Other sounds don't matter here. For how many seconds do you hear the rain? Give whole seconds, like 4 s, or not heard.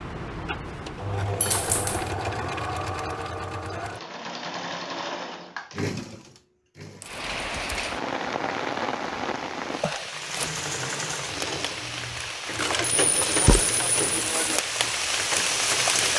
9 s.